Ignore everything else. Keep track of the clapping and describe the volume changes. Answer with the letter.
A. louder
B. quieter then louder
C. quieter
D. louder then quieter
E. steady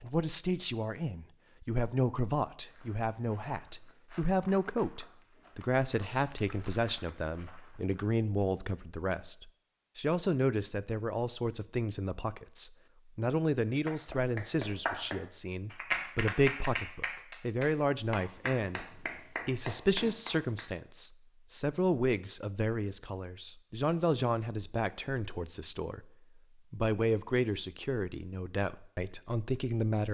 C.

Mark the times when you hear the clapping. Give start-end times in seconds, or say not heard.
13.8-20.6.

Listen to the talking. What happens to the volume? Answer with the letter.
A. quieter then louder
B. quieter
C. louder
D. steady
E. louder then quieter
D.